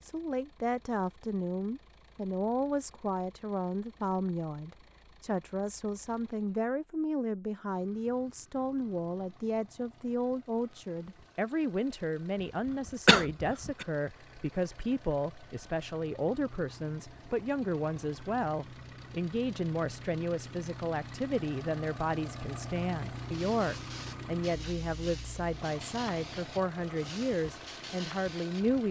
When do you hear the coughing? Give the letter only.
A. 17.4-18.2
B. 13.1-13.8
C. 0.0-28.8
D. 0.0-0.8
B.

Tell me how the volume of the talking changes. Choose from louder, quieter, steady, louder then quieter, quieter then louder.
steady.